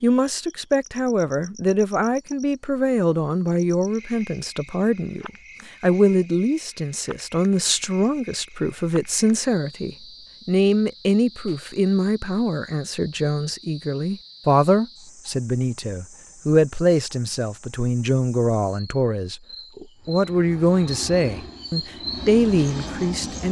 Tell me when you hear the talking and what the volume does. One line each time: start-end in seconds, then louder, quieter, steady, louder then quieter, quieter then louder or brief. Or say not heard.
0.0-23.4 steady.